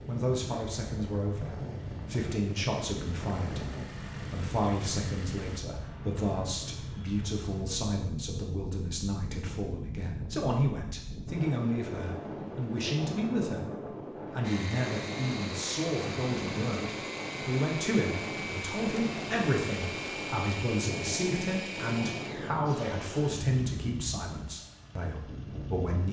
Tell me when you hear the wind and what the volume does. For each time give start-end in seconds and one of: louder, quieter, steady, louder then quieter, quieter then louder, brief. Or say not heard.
0.0-26.0 steady.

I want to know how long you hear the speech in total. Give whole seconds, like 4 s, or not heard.
26 s.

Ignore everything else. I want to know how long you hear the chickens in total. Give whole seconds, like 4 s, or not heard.
not heard.